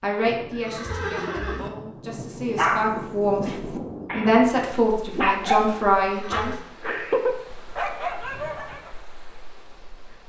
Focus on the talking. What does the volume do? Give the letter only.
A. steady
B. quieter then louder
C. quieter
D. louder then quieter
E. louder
E.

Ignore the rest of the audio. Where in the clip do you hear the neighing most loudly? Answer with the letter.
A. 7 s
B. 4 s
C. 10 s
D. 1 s
D.